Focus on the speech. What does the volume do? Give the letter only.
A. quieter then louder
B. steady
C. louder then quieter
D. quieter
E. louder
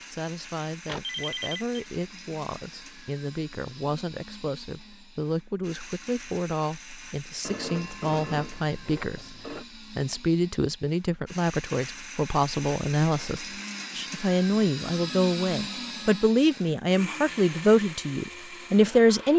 E.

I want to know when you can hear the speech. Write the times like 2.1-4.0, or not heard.
0.1-19.3.